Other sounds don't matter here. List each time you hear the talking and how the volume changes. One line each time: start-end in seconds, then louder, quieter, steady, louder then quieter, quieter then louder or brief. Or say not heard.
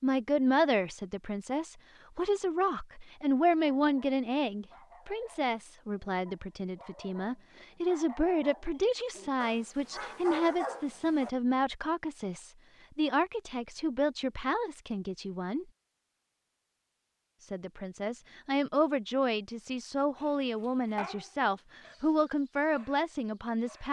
0.0-15.7 steady
17.4-23.8 steady.